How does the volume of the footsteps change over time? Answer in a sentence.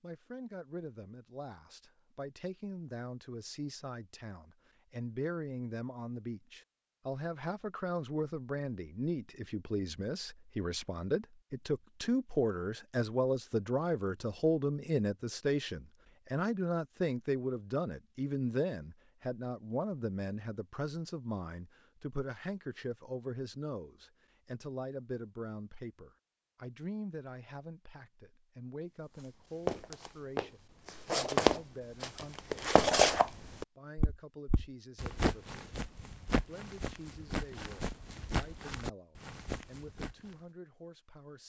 The loudness of the footsteps goes down.